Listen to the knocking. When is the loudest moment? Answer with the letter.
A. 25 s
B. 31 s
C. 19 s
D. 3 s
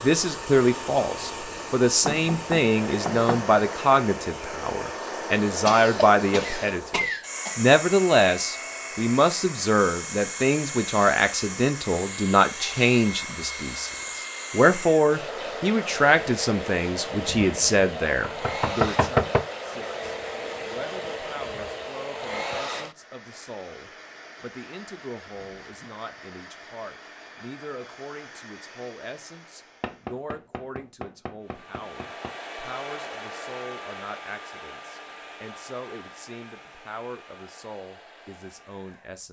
C.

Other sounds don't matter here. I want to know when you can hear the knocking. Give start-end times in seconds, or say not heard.
2.0-3.5, 17.2-19.4, 29.8-32.3.